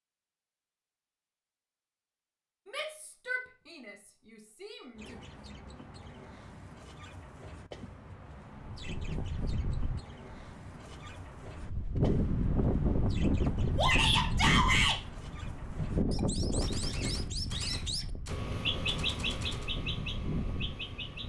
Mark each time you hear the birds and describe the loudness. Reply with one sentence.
You can hear the birds from 5.0 to 21.2 s, getting louder.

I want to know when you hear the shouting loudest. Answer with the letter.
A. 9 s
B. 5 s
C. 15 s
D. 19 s
C.